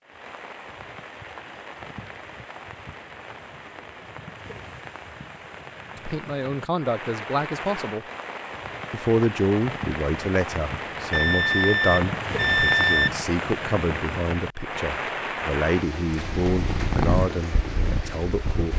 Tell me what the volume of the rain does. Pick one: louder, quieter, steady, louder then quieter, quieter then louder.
louder.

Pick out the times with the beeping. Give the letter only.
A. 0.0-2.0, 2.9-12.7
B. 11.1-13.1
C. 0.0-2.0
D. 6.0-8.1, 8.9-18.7
B.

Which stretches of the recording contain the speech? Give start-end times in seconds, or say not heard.
6.0-8.1, 8.9-18.7.